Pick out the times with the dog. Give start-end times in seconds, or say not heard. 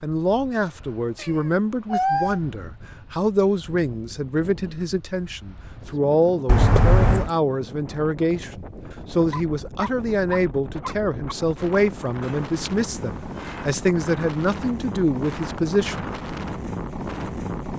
9.3-11.3.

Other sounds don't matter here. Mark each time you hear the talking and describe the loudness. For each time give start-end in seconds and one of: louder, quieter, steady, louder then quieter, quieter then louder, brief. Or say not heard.
0.0-16.1 steady.